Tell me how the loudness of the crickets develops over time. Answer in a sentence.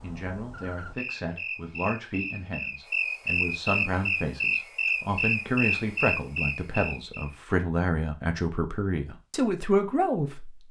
The volume of the crickets goes up.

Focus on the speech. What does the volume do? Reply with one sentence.
The loudness of the speech goes up.